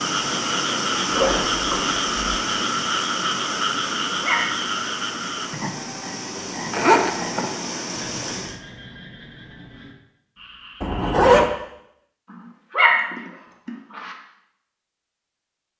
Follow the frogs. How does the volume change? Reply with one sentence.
The volume of the frogs goes down.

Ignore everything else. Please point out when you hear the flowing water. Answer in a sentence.
The flowing water can be heard from 0.0 to 8.6 s.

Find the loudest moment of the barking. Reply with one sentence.
The loudest moment of the barking is at 13 seconds.